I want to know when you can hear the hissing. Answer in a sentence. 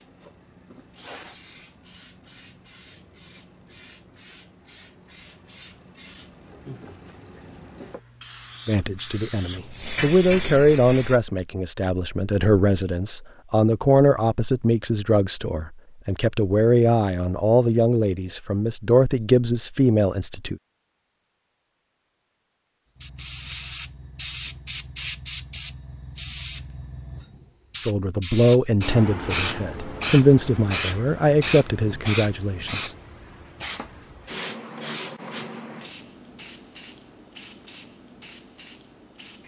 The hissing can be heard from 0.0 to 11.2 s and from 22.9 to 39.4 s.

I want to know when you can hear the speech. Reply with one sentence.
You can hear the speech from 8.7 to 20.6 s and from 27.9 to 33.0 s.